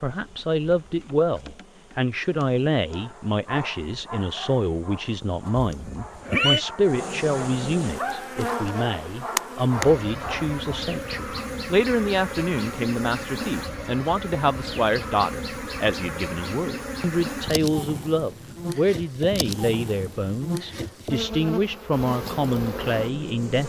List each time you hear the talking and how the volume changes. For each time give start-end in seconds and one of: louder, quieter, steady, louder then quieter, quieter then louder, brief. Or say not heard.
0.0-23.6 steady.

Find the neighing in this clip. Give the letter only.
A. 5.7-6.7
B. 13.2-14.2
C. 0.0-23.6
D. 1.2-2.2
A.